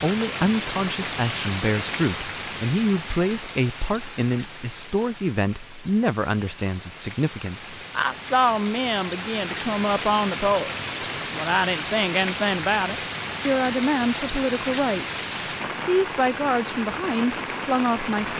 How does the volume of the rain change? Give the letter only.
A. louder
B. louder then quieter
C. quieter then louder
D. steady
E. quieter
C.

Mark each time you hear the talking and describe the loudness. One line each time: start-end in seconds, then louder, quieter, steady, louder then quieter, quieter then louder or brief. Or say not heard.
0.0-18.3 steady.